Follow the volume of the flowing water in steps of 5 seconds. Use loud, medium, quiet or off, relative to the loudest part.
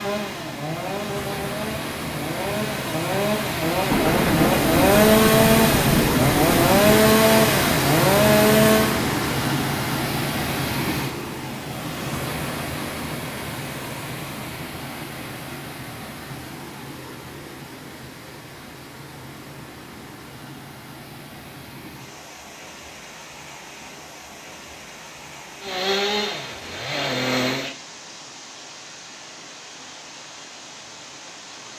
medium, loud, medium, quiet, quiet, quiet, quiet.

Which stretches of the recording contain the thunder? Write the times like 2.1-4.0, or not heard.
3.9-6.9.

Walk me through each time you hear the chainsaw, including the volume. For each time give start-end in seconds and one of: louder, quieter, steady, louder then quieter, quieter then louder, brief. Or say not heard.
0.0-9.0 louder
25.6-27.8 brief.